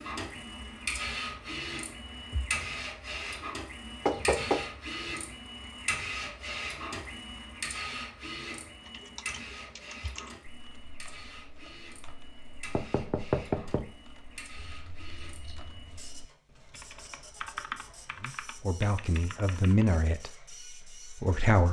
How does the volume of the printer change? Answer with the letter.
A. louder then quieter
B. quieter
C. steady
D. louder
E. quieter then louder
B.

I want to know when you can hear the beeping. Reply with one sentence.
The beeping can be heard from 14.6 to 16.1 s.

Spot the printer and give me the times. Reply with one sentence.
The printer can be heard from 0.0 to 21.6 s.